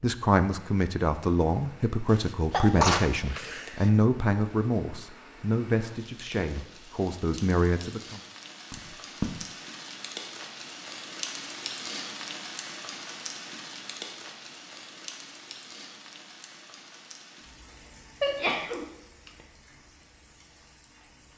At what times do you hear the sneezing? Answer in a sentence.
You can hear the sneezing from 2.1 to 3.9 s, from 8.7 to 9.3 s and from 18.2 to 19.3 s.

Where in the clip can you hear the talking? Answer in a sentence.
The talking can be heard from 0.0 to 8.2 s.